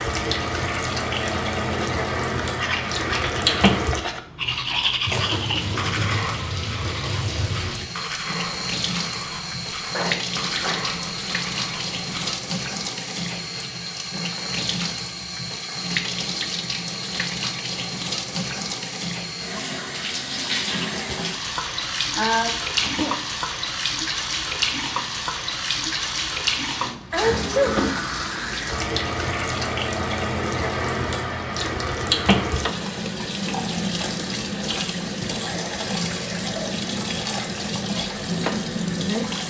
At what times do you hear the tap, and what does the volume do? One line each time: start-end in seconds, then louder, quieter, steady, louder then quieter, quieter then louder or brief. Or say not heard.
0.0-39.4 steady.